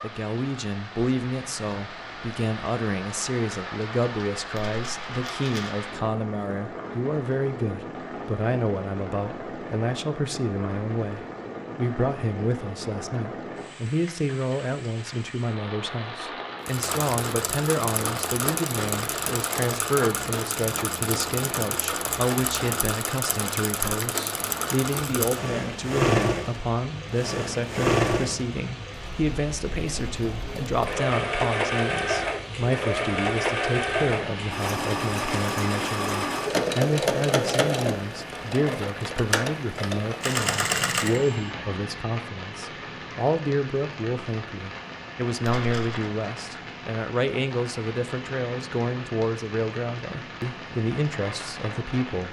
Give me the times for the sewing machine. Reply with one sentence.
You can hear the sewing machine from 16.6 to 41.4 s.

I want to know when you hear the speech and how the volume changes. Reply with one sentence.
You can hear the speech from 0.0 to 52.2 s, at a steady volume.